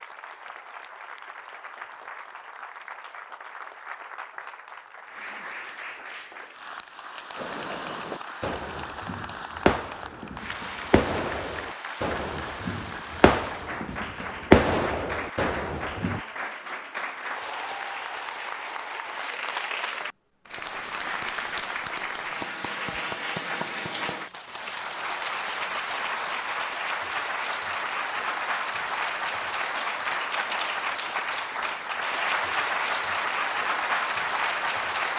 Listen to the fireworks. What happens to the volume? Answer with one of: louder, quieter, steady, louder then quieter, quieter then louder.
louder.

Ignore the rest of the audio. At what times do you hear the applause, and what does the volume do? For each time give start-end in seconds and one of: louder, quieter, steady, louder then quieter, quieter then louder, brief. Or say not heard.
0.0-35.1 louder.